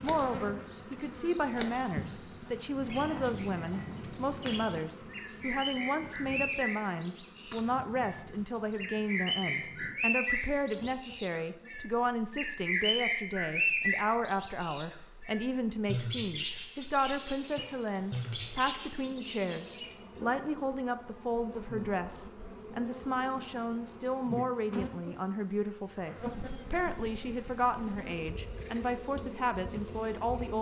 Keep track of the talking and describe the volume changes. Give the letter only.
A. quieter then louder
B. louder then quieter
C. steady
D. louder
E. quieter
C.